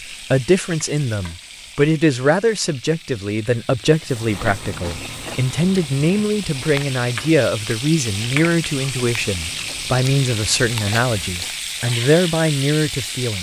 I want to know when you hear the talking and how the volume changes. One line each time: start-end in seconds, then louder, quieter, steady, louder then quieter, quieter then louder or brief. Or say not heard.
0.3-13.3 steady.